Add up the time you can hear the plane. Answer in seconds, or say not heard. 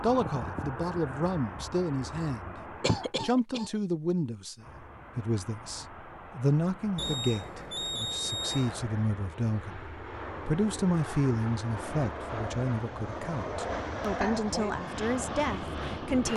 15 s.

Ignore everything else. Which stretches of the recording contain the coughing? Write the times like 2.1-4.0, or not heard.
2.8-3.7, 14.1-14.8.